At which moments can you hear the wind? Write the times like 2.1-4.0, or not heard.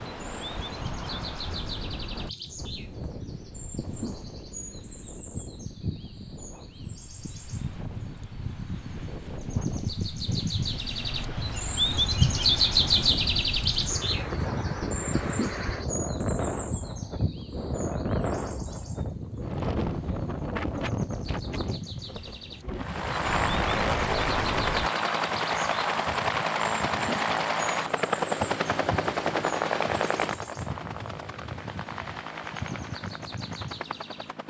0.0-24.9.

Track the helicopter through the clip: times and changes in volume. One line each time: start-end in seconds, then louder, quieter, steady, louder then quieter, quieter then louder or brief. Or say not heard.
22.8-34.4 quieter.